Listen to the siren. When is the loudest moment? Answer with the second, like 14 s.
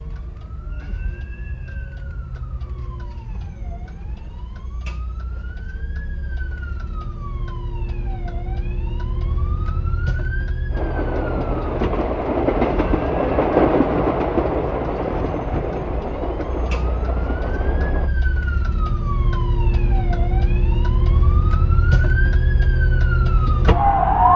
24 s.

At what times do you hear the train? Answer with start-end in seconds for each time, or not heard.
10.7-18.1.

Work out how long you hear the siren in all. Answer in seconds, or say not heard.
24 s.